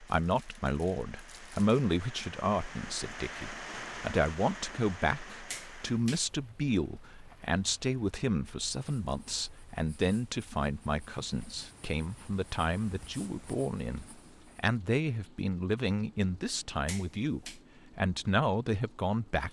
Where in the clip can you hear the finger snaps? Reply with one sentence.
You can hear the finger snaps from 5.5 to 6.3 s and from 16.9 to 17.6 s.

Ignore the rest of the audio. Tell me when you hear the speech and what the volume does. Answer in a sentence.
You can hear the speech from 0.0 to 19.4 s, at a steady volume.